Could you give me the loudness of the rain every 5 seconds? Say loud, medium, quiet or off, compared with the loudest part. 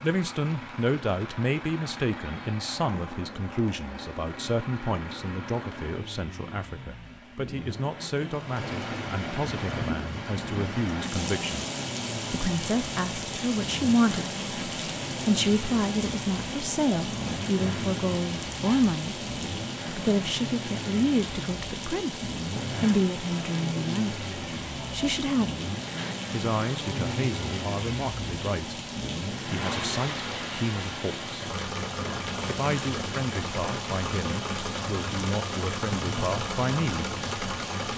quiet, loud, loud, loud, loud, loud, loud, loud.